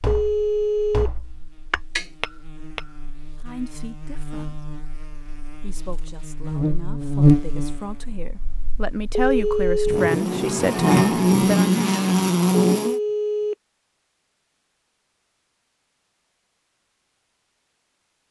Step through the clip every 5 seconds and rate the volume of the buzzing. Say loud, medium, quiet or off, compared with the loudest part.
quiet, medium, loud, off.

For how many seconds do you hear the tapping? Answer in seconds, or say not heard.
3 s.